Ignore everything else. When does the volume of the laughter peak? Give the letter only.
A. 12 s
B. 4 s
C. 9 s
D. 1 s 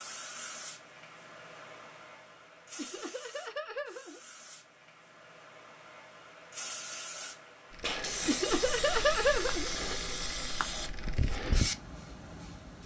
C.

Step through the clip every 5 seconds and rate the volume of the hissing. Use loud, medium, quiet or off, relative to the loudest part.
medium, loud, loud.